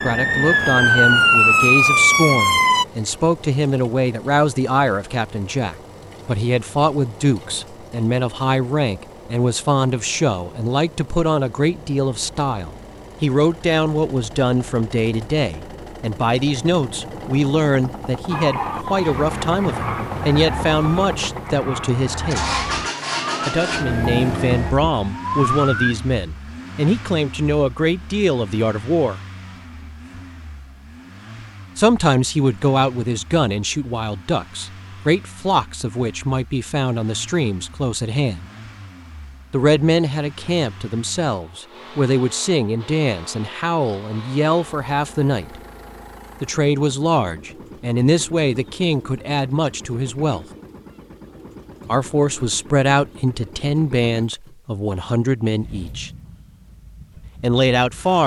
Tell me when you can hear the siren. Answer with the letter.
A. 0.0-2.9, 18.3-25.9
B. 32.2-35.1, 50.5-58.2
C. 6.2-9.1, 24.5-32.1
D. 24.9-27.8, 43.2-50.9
A.